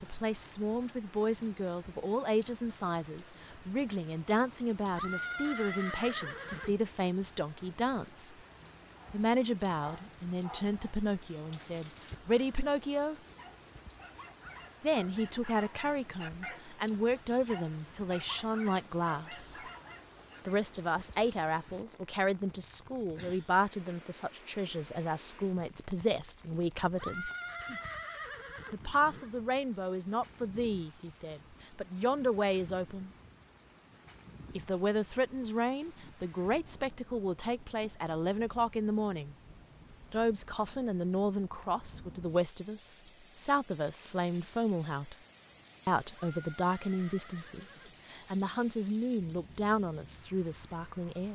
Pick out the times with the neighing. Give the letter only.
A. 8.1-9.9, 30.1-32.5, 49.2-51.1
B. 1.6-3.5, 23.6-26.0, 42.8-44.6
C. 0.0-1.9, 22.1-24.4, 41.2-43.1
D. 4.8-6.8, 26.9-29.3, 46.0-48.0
D.